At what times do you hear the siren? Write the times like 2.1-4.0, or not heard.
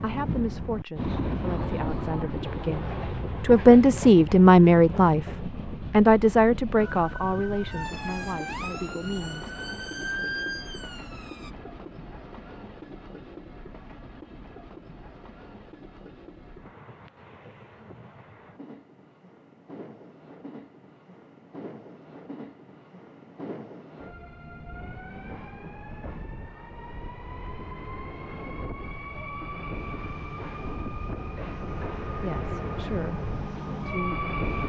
6.8-11.5.